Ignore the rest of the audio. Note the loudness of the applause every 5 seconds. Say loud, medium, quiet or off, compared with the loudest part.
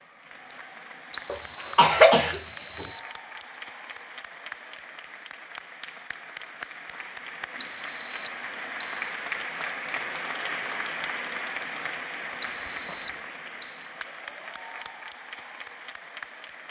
medium, loud, loud, medium.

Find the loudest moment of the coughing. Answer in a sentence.
The loudest moment of the coughing is at 2 seconds.